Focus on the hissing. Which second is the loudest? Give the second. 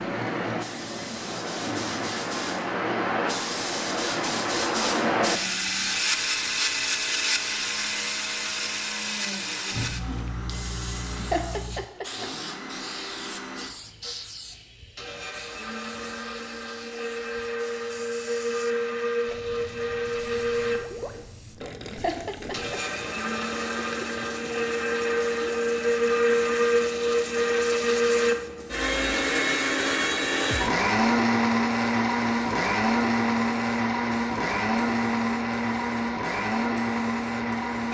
5 s.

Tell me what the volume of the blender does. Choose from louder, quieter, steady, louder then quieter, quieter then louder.
louder.